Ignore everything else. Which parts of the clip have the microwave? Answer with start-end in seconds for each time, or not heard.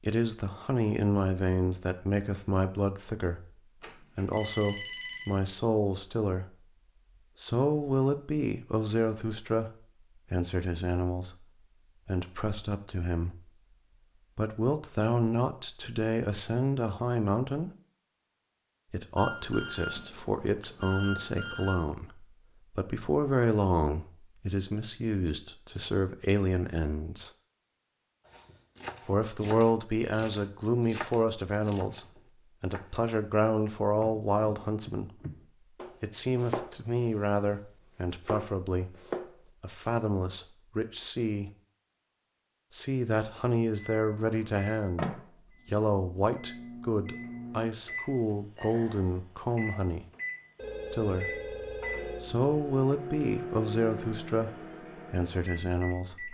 43.8-56.3.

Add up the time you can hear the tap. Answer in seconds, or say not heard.
not heard.